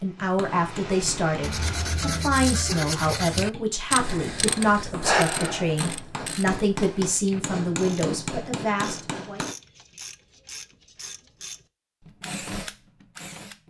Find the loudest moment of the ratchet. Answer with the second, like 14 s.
5 s.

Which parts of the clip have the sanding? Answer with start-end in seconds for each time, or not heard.
1.4-3.5.